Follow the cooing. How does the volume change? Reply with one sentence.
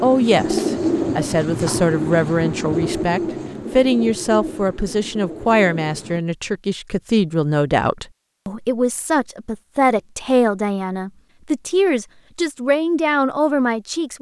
The loudness of the cooing goes down.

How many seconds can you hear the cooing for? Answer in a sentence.
The cooing can be heard for 6 seconds in total.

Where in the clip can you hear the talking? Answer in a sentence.
The talking can be heard from 0.0 to 14.1 s.